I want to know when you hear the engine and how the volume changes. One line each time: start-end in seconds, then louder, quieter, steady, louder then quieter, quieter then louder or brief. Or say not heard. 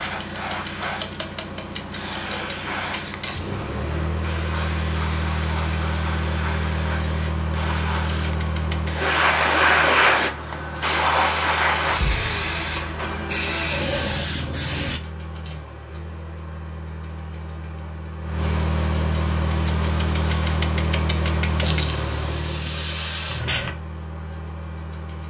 0.0-25.2 quieter then louder.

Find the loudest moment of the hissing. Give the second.
10 s.